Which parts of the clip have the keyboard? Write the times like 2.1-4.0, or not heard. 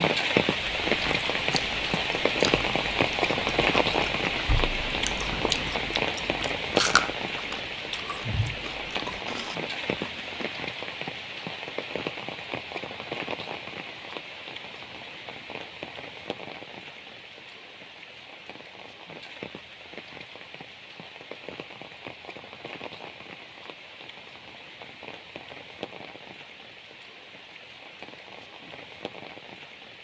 not heard.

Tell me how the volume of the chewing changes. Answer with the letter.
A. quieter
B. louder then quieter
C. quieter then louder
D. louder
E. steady
B.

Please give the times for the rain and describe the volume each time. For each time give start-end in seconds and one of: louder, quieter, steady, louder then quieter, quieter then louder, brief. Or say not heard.
0.0-30.0 quieter.